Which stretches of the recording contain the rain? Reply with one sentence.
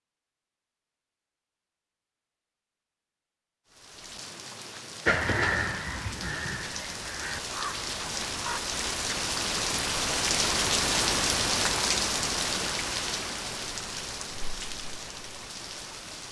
The rain can be heard from 3.6 to 16.2 s.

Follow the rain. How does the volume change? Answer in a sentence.
The loudness of the rain goes up, then down.